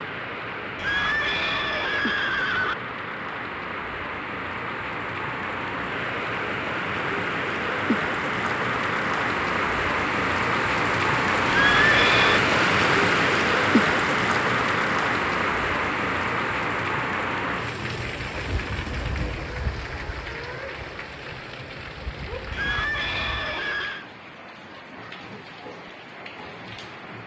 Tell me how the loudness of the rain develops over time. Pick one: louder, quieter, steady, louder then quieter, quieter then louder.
louder then quieter.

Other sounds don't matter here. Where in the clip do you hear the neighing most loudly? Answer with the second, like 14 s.
12 s.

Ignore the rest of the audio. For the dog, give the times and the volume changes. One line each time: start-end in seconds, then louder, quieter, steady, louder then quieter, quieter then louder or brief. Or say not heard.
not heard.